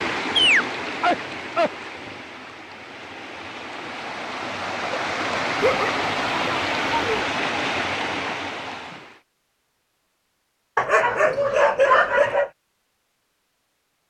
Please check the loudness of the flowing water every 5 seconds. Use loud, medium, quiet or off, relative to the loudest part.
medium, loud, off.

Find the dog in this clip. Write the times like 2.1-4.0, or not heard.
0.3-2.2, 5.6-7.2, 10.8-12.5.